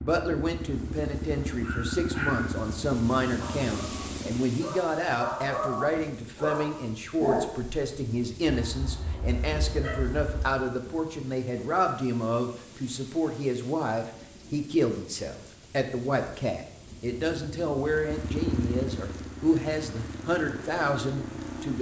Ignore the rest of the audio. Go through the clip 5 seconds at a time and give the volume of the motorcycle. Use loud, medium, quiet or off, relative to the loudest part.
loud, off, off, loud, loud.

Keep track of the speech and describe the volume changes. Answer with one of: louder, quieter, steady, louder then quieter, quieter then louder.
steady.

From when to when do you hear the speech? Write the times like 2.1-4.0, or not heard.
0.0-21.7.